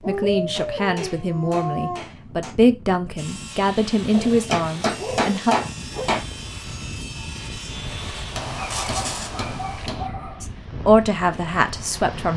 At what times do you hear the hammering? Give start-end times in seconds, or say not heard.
0.5-2.5, 4.5-6.2, 8.3-10.1.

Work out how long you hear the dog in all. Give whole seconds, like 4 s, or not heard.
6 s.